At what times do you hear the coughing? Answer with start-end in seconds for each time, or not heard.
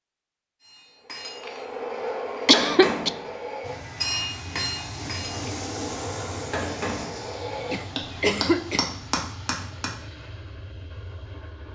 2.5-3.1, 7.7-8.9.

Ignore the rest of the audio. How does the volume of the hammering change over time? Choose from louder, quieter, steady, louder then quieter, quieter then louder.
quieter then louder.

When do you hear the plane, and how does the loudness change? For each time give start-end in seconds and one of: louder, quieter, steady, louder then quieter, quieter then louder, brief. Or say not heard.
3.6-11.7 quieter.